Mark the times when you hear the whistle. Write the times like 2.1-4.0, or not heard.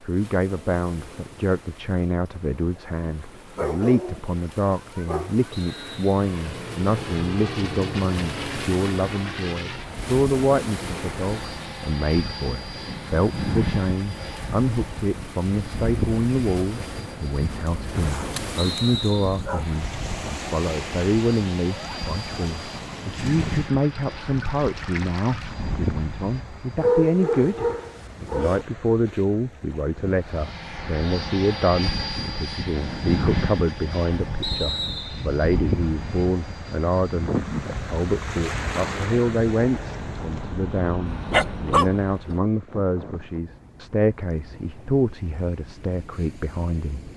5.5-6.2, 18.6-19.4, 34.4-35.3.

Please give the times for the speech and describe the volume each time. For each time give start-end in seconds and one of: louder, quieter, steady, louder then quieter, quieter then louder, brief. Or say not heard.
0.0-47.1 steady.